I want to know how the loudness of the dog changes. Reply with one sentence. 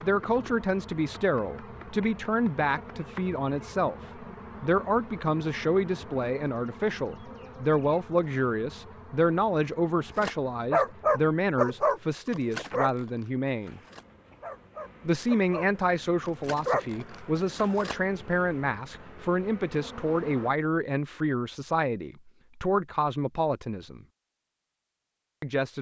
The volume of the dog goes down, then up.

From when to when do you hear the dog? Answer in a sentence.
The dog can be heard from 10.2 to 17.9 s.